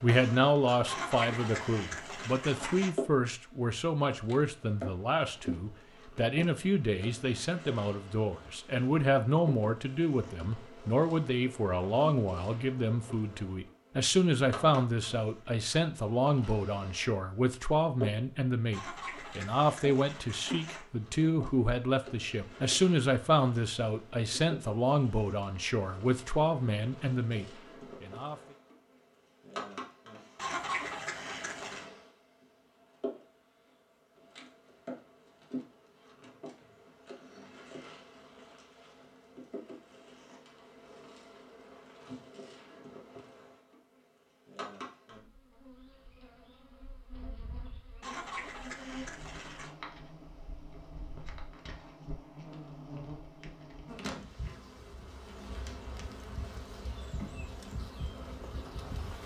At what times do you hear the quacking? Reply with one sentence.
You can hear the quacking from 0.8 to 2.9 s, from 18.7 to 20.9 s, from 30.4 to 31.9 s and from 48.0 to 49.8 s.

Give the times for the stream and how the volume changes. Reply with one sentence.
You can't hear the stream here.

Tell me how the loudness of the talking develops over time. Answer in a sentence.
The loudness of the talking stays about the same.